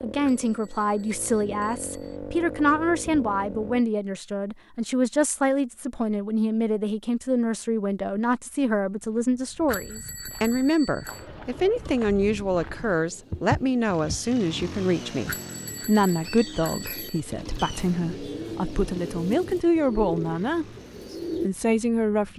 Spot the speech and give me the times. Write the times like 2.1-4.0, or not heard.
0.0-20.6, 21.4-22.3.